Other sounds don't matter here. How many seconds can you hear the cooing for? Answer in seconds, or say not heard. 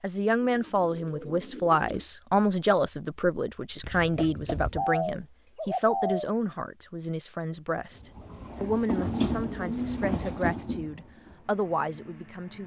5 s.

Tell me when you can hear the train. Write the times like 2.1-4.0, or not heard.
8.0-12.6.